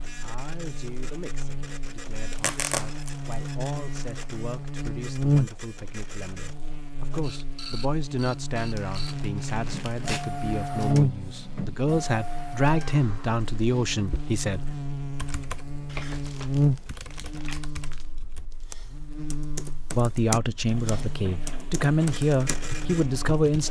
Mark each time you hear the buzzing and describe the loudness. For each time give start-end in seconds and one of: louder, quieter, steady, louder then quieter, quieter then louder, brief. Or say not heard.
0.0-23.4 louder then quieter.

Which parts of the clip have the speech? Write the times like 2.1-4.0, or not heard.
0.0-14.7, 19.9-23.6.